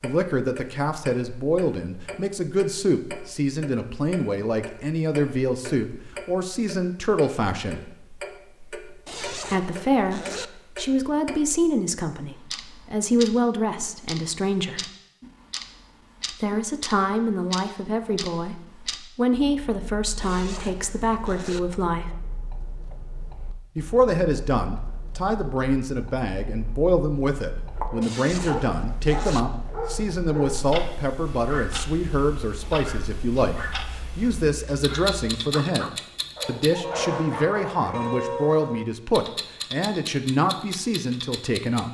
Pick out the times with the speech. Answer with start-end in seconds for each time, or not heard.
0.0-7.8, 9.5-14.9, 16.3-22.1, 23.8-41.8.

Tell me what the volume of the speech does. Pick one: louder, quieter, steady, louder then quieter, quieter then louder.
steady.